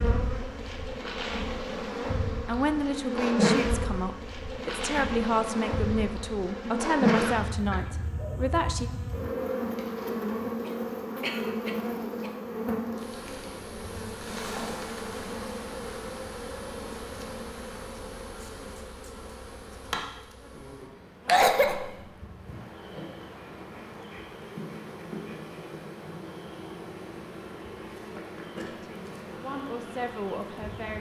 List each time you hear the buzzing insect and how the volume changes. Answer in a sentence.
The buzzing insect can be heard from 0.0 to 30.9 s, getting quieter.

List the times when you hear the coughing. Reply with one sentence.
The coughing can be heard from 6.7 to 8.0 s, from 10.7 to 12.3 s and from 21.2 to 21.9 s.